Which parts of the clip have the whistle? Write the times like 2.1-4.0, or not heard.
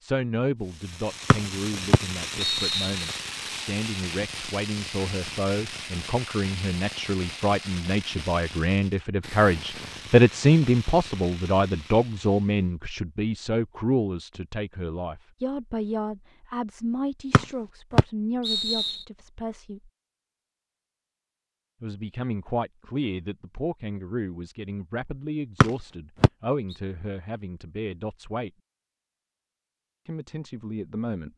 1.3-3.1, 17.3-19.0, 25.6-26.3.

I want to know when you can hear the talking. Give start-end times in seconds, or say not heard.
0.0-19.9, 21.8-28.5, 30.1-31.3.